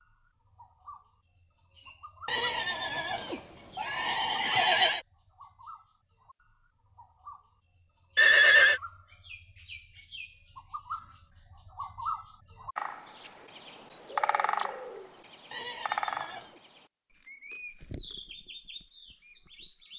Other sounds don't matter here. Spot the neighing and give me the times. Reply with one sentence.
The neighing can be heard from 2.2 to 5.0 s, from 8.2 to 8.8 s and from 15.5 to 16.6 s.